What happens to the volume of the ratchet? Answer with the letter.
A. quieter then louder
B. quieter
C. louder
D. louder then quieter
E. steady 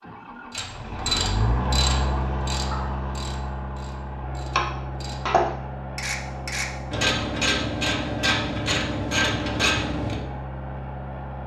A.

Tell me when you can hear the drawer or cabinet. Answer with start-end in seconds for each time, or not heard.
not heard.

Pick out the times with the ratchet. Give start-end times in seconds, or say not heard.
0.5-10.2.